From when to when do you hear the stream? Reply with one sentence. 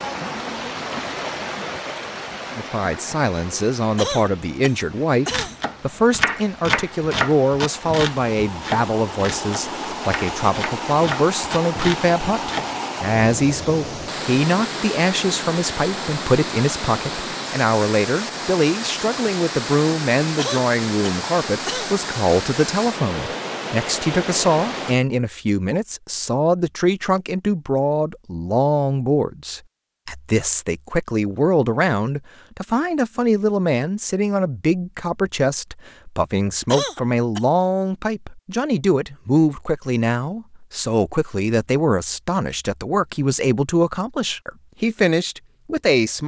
The stream can be heard from 0.0 to 25.0 s.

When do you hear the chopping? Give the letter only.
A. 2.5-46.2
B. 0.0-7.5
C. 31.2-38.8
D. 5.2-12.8
D.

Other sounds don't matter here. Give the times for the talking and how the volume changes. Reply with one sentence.
The talking can be heard from 2.5 to 46.2 s, at a steady volume.